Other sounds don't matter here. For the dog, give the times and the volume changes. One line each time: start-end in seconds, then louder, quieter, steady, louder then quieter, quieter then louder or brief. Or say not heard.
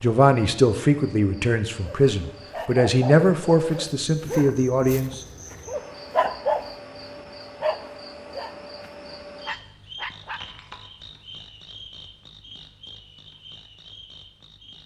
1.8-6.8 quieter then louder
7.6-10.4 brief.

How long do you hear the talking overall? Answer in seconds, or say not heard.
5 s.